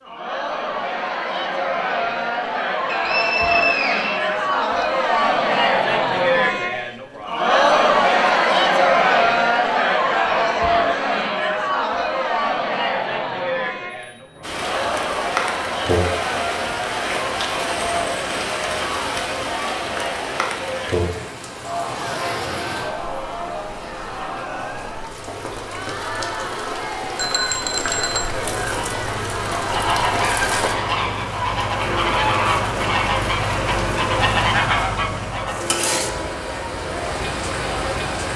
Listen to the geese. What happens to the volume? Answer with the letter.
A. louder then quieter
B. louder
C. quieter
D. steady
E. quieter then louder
B.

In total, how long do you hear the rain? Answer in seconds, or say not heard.
24 s.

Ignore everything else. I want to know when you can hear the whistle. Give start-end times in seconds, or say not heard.
2.9-4.8.